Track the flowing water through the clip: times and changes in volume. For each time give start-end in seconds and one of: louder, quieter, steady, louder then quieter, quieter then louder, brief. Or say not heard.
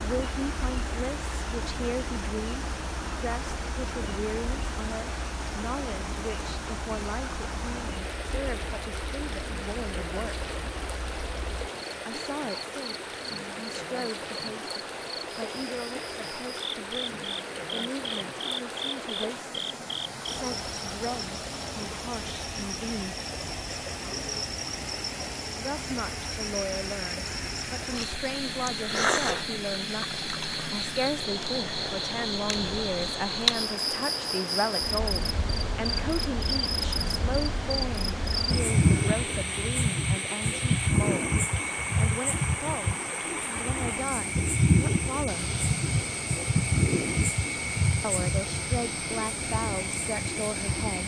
0.0-51.0 steady.